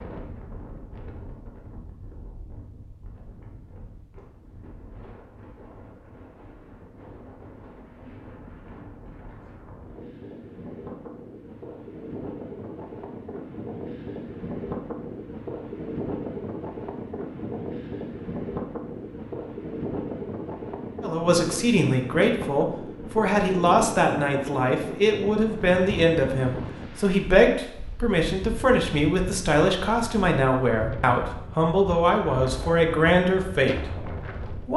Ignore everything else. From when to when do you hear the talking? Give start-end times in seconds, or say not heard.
21.0-34.7.